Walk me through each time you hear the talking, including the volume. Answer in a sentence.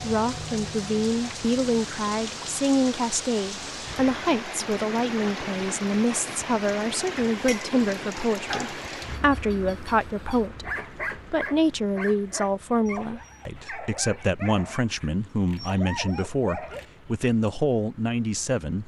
You can hear the talking from 0.0 to 18.8 s, at a steady volume.